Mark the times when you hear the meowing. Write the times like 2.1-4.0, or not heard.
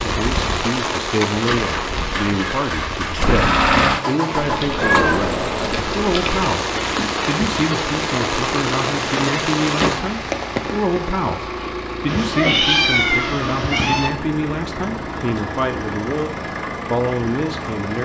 4.3-6.5, 12.1-14.1.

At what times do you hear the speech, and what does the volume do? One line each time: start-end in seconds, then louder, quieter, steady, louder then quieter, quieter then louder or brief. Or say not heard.
0.0-18.0 steady.